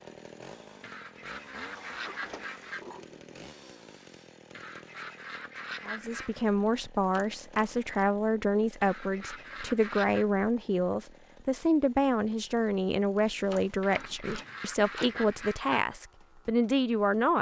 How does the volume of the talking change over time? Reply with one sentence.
The loudness of the talking stays about the same.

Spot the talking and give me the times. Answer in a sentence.
You can hear the talking from 5.8 to 17.3 s.